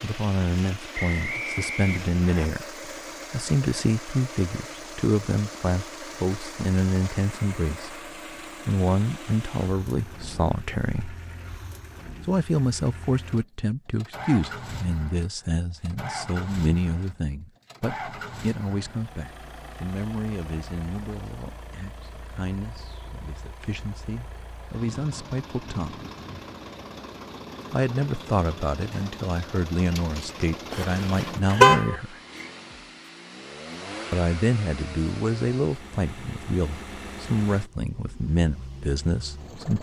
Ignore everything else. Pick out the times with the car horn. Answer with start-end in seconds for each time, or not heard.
30.7-31.9.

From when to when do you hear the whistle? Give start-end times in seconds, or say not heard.
0.9-2.5.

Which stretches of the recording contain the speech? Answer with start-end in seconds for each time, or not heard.
0.0-8.0, 8.7-11.2, 12.2-26.1, 27.7-32.1, 34.1-39.7.